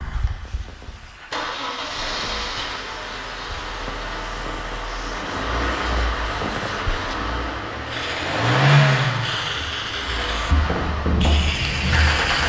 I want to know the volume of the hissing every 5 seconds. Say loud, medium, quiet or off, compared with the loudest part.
quiet, medium, loud.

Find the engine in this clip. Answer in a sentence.
The engine can be heard from 0.0 to 12.4 s.